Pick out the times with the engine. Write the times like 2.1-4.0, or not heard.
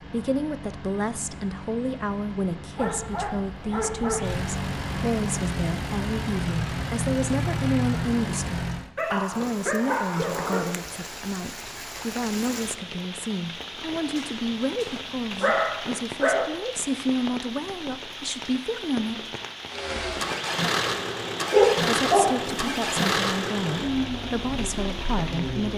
0.0-8.9, 19.6-25.7.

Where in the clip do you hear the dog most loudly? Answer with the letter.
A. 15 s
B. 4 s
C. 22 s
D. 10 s
C.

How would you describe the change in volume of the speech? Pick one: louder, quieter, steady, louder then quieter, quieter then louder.
steady.